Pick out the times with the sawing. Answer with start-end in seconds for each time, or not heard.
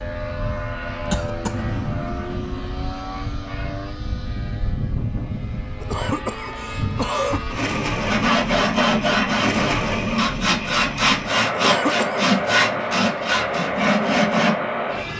8.1-14.6.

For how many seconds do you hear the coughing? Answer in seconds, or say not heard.
3 s.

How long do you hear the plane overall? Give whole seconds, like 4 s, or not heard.
15 s.